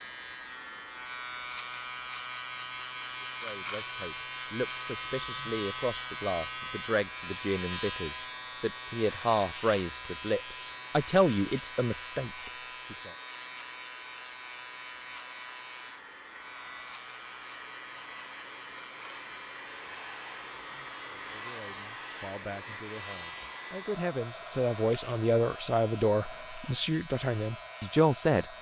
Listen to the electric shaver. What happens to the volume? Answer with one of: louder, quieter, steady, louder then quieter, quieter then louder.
quieter.